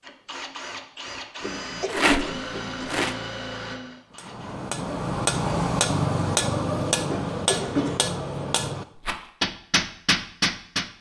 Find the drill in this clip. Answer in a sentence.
The drill can be heard from 0.0 to 4.6 s.